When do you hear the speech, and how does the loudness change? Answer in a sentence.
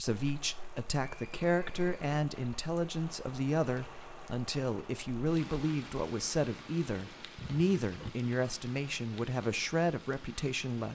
You can hear the speech from 0.0 to 10.9 s, at a steady volume.